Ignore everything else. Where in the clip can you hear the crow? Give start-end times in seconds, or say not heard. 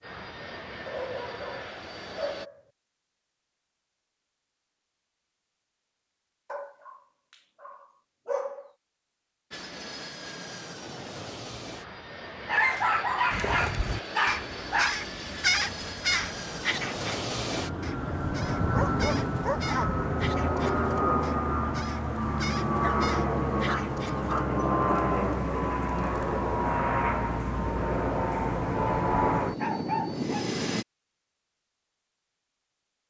13.3-24.4.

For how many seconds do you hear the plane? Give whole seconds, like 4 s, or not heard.
24 s.